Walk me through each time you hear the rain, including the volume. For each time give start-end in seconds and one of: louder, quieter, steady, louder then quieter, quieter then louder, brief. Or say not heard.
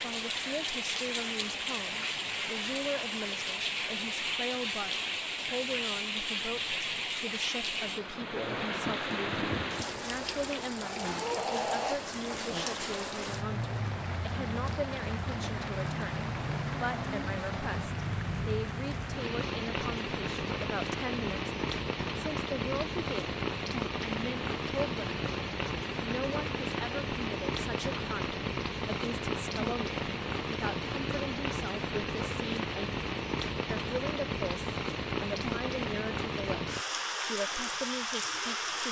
0.0-38.8 steady.